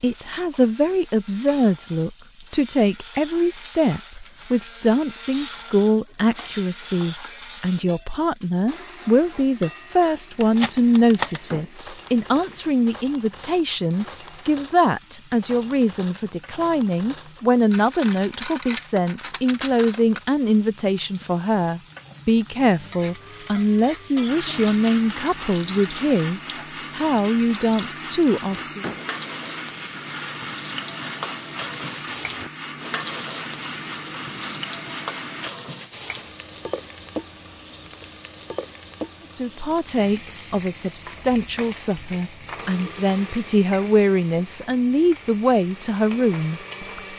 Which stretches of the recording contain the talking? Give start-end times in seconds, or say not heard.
0.0-28.9, 39.4-47.1.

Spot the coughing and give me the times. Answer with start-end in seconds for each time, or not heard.
not heard.